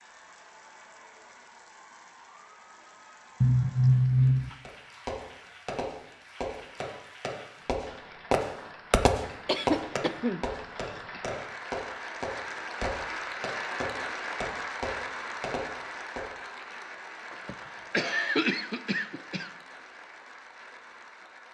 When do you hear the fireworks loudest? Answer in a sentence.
The volume of the fireworks peaks at 9 seconds.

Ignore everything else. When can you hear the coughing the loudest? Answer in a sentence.
The volume of the coughing peaks at 4 seconds.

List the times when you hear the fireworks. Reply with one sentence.
The fireworks can be heard from 4.7 to 16.2 s.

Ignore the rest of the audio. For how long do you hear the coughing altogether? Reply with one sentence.
The coughing can be heard for 4 seconds in total.